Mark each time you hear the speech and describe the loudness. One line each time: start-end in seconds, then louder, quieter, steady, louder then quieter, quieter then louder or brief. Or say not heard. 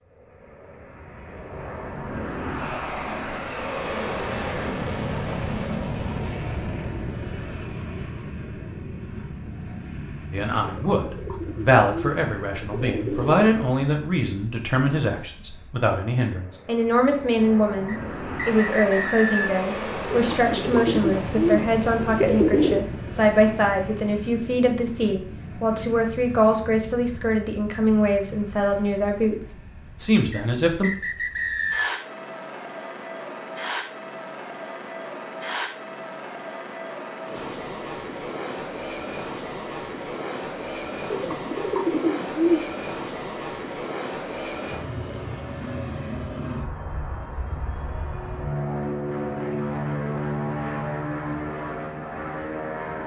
10.3-30.9 steady.